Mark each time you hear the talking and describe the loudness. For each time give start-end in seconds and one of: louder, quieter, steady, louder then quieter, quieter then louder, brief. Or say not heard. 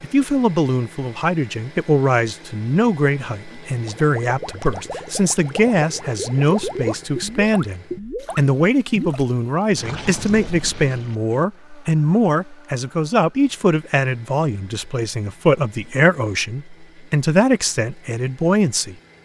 0.0-19.2 steady.